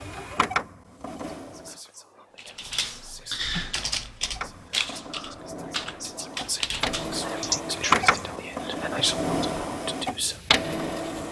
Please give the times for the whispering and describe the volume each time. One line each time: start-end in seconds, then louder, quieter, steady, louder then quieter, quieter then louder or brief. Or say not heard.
1.4-10.4 louder.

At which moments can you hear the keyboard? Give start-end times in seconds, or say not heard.
2.4-8.2.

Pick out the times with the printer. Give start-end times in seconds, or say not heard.
0.0-1.7, 4.2-11.2.